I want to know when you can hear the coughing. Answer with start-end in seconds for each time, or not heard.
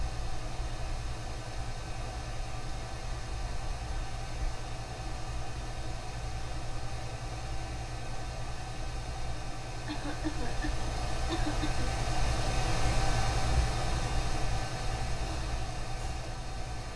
9.8-11.8.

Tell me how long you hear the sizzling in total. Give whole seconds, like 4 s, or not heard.
not heard.